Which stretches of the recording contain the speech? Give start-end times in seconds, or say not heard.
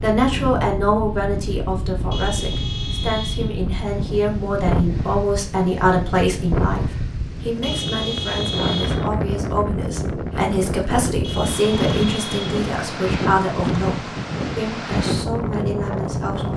0.0-16.5.